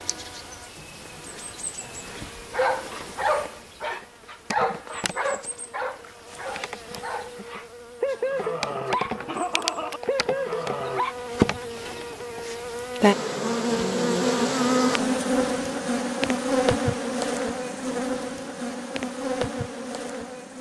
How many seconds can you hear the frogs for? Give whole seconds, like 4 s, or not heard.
not heard.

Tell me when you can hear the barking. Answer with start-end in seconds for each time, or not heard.
1.9-11.2.